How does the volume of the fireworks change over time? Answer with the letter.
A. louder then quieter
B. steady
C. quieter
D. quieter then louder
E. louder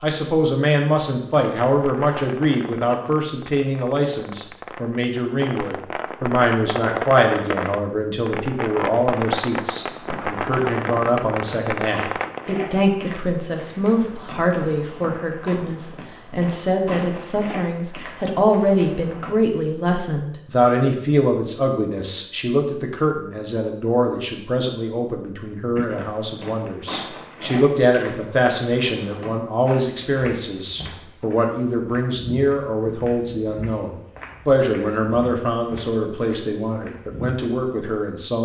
E.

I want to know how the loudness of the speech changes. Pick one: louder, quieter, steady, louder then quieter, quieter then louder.
steady.